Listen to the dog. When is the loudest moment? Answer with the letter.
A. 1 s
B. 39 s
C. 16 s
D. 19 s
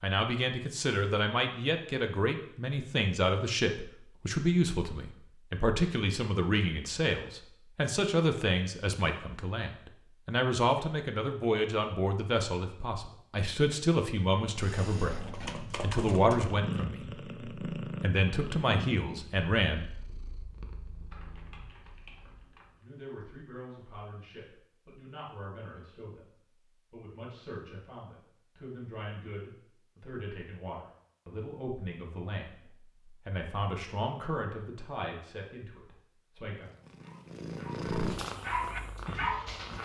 B.